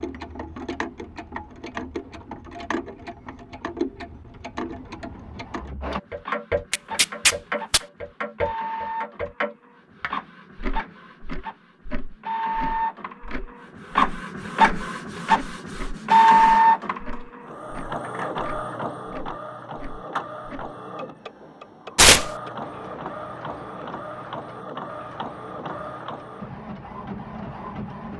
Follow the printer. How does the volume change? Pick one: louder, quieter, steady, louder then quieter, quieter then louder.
louder then quieter.